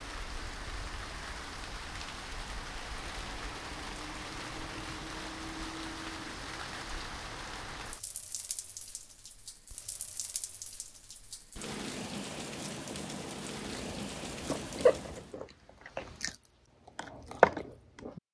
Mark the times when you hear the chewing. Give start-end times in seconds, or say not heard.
13.7-18.2.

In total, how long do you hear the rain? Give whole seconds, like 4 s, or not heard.
15 s.